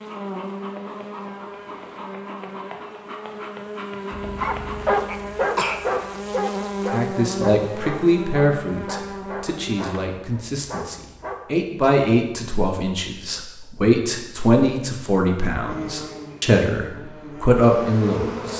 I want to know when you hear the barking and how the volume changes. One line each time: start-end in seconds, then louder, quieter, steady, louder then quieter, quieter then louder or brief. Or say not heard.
4.1-11.3 quieter.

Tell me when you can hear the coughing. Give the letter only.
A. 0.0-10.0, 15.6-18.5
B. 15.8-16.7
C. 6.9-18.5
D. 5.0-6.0
D.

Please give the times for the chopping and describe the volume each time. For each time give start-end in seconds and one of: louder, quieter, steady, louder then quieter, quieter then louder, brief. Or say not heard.
not heard.